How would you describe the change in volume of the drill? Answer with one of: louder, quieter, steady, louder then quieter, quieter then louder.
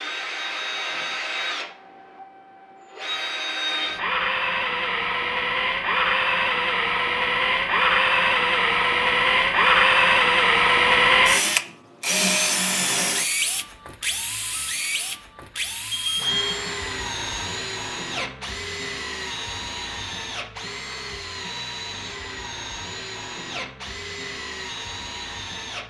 louder then quieter.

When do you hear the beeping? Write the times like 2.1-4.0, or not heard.
15.9-16.6.